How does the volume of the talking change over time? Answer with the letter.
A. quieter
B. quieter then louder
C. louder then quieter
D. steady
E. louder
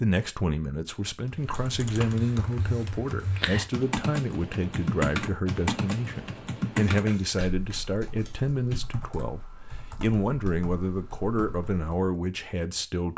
D.